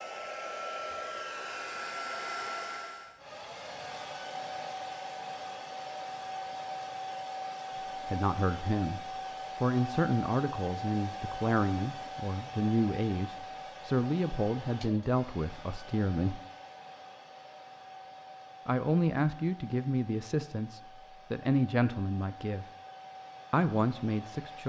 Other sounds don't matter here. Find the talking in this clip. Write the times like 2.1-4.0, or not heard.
8.1-16.4, 18.6-22.6, 23.5-24.6.